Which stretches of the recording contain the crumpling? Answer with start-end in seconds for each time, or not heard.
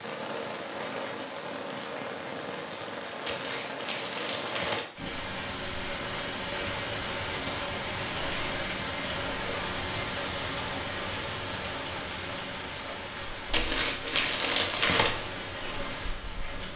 3.2-4.9, 13.5-15.2.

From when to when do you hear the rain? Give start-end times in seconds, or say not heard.
0.0-16.7.